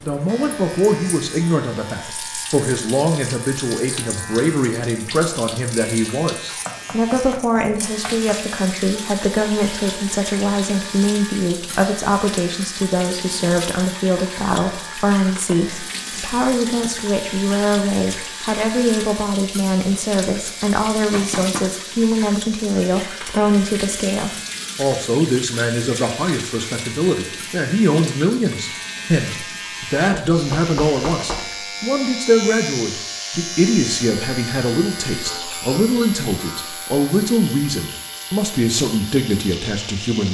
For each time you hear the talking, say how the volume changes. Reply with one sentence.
The talking can be heard from 0.0 to 40.3 s, at a steady volume.